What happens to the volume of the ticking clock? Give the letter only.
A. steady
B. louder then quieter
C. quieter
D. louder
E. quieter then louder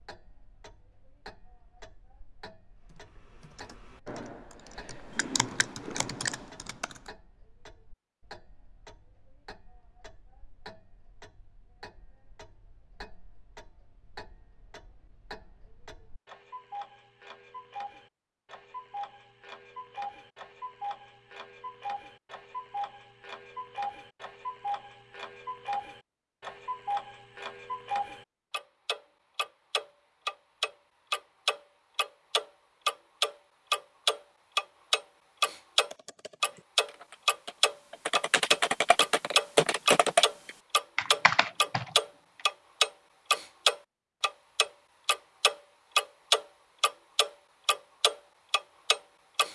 D.